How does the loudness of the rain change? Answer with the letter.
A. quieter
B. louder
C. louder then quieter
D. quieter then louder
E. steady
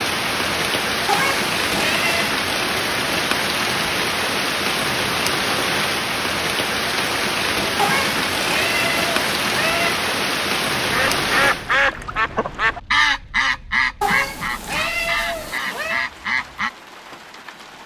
A.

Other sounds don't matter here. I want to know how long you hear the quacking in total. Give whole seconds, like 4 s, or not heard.
6 s.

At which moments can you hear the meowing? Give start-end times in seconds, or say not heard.
1.1-2.4, 7.8-10.0, 14.0-16.1.